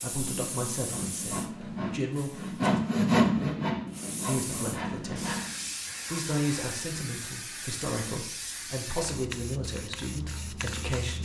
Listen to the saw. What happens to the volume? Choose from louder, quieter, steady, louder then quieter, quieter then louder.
louder then quieter.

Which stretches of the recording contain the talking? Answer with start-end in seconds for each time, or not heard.
0.0-2.8, 4.2-5.3, 6.0-11.1.